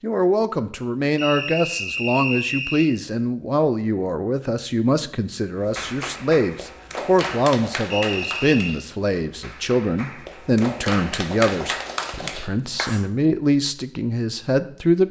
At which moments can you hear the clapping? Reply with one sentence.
The clapping can be heard from 5.6 to 13.1 s.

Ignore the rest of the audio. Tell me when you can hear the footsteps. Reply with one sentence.
The footsteps can't be heard in this clip.